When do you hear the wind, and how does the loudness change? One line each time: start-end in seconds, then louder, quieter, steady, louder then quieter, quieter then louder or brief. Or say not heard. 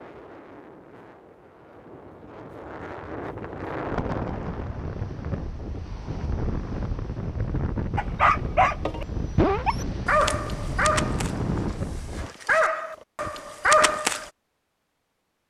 0.0-12.3 louder.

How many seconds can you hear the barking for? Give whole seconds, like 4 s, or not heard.
6 s.